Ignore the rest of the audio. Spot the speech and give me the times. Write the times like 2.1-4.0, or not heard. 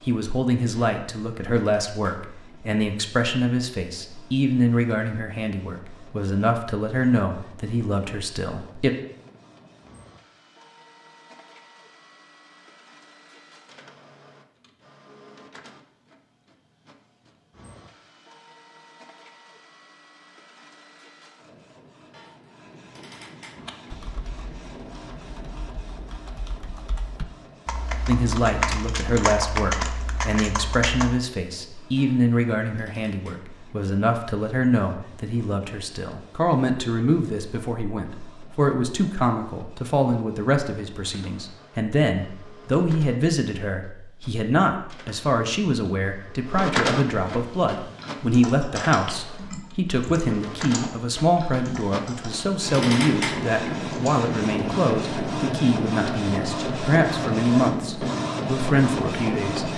0.1-8.9, 28.1-59.7.